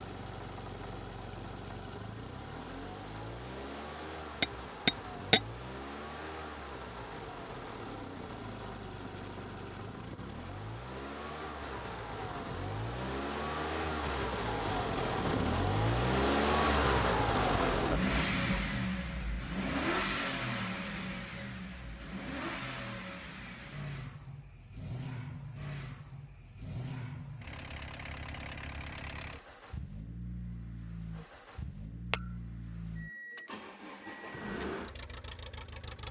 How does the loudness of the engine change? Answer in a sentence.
The loudness of the engine goes up, then down.